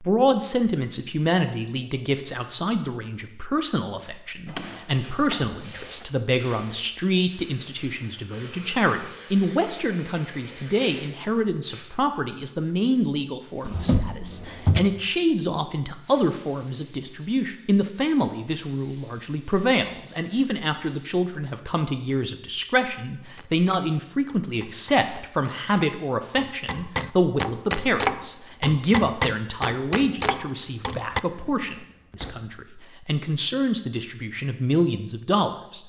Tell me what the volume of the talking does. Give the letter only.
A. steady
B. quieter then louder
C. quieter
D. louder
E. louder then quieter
A.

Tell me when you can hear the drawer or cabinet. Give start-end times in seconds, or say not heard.
4.5-6.0, 13.6-14.8, 31.3-32.5.